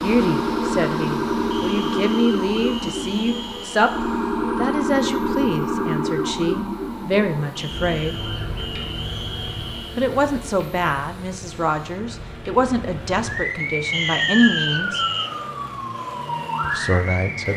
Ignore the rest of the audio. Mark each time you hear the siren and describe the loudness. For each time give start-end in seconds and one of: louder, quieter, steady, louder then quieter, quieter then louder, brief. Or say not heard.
0.0-17.5 quieter then louder.